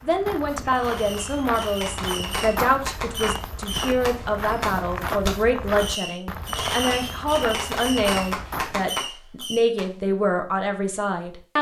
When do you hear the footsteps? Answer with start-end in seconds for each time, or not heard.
0.0-8.9.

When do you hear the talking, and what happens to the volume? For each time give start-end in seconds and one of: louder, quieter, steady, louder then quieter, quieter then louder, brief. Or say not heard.
0.0-11.5 steady.